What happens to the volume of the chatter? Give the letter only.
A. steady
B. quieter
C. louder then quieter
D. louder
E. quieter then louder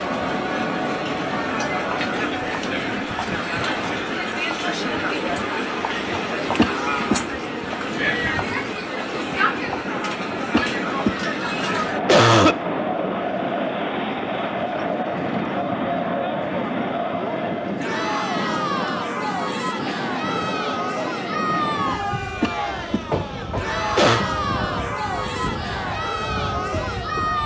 A.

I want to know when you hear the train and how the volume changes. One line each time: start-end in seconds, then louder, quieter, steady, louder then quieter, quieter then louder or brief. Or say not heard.
0.0-27.4 steady.